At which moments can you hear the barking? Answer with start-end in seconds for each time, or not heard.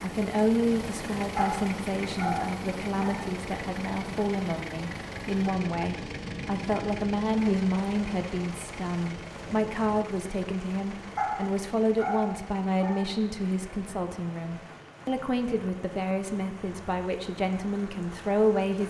1.4-3.2, 11.2-13.1.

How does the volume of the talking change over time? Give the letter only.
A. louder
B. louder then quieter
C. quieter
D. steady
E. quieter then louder
D.